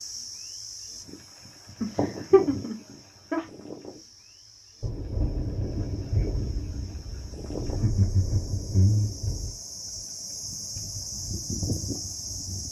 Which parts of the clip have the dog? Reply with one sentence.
You can't hear the dog here.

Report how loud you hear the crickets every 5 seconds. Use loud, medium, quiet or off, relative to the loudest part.
medium, medium, loud.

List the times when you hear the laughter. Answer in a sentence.
You can hear the laughter from 1.8 to 3.5 s and from 7.6 to 9.1 s.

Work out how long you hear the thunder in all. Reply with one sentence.
You can hear the thunder for 5 seconds altogether.